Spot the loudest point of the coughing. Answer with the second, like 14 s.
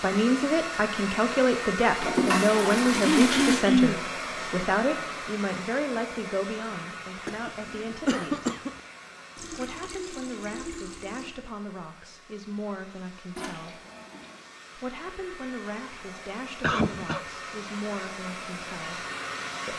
4 s.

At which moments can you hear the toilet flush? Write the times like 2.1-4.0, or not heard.
2.0-3.6, 9.3-11.3, 13.3-14.4.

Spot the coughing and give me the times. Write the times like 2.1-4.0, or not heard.
3.0-4.0, 7.2-8.7, 16.6-17.2.